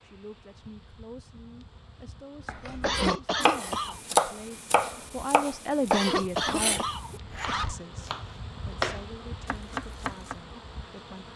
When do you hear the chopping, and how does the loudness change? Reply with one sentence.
The chopping can be heard from 2.5 to 10.3 s, getting quieter then louder.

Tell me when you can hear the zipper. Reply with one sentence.
You can hear the zipper from 7.2 to 7.8 s.